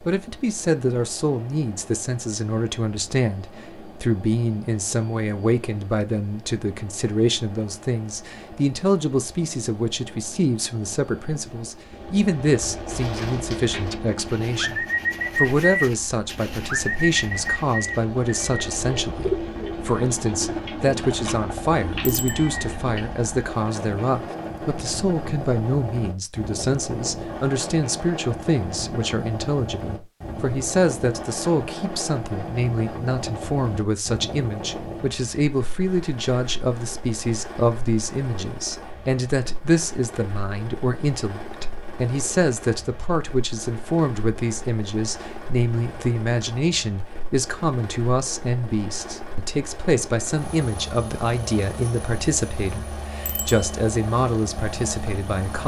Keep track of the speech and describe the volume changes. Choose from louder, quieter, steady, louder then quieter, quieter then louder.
steady.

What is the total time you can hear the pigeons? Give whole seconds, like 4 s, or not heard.
10 s.